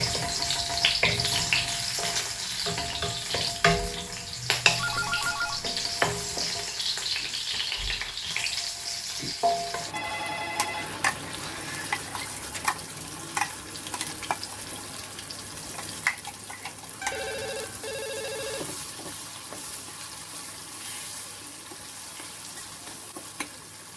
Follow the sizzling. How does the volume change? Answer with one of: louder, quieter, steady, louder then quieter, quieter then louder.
quieter.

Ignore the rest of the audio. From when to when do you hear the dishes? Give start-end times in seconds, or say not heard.
not heard.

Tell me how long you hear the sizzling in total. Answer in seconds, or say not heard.
24 s.